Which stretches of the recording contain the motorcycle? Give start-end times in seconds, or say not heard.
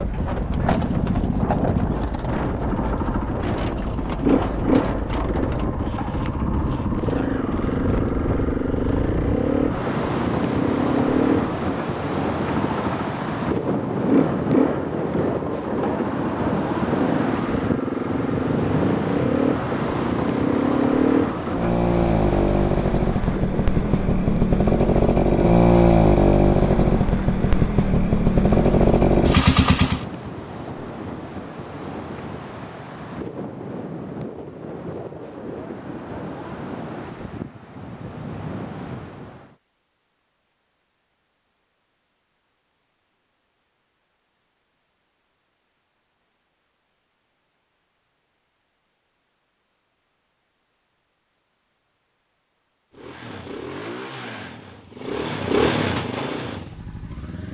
0.0-30.1, 52.9-57.4.